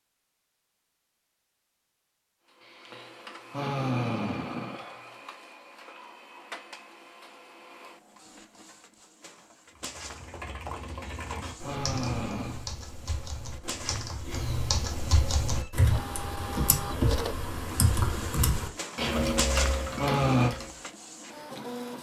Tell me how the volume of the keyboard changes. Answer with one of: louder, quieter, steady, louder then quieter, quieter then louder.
louder.